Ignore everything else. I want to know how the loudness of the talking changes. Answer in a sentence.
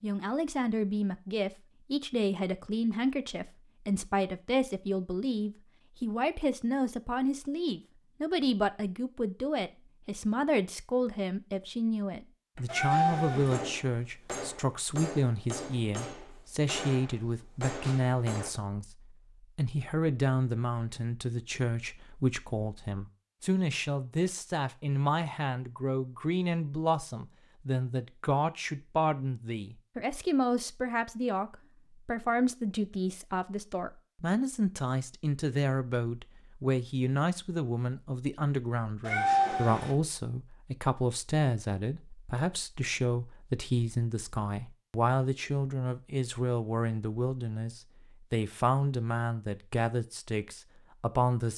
The volume of the talking stays about the same.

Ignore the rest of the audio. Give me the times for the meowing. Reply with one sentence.
The meowing can be heard from 12.7 to 13.6 s and from 39.0 to 40.0 s.